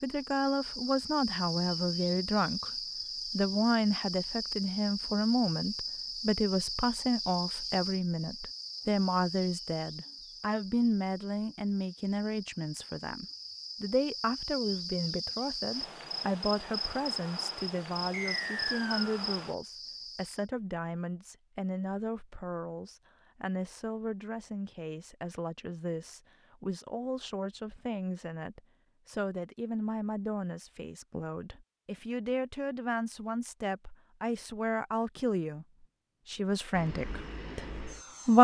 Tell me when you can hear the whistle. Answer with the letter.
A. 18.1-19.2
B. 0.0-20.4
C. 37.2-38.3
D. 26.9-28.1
A.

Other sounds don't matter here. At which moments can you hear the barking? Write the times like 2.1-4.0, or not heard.
not heard.